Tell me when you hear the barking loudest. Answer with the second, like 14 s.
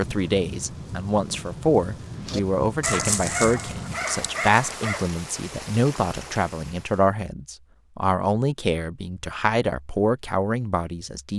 3 s.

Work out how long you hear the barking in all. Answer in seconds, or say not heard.
3 s.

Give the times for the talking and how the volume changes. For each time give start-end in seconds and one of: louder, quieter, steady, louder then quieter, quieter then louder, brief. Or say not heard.
0.0-11.3 steady.